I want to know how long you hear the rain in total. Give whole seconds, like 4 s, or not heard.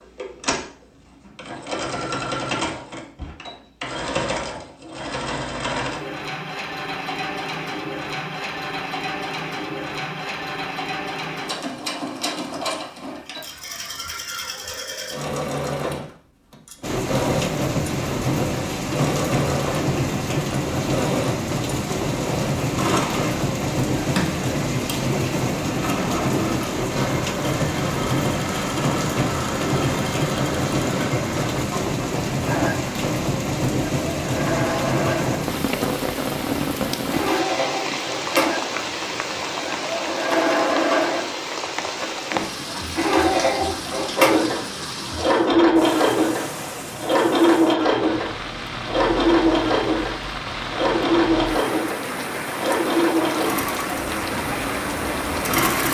39 s.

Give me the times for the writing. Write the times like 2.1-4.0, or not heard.
not heard.